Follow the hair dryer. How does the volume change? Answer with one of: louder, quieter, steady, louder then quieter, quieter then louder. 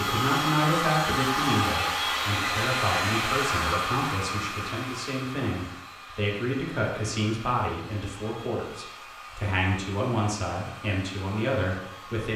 quieter.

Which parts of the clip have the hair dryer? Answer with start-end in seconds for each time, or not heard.
0.0-12.3.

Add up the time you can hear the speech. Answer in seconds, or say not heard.
12 s.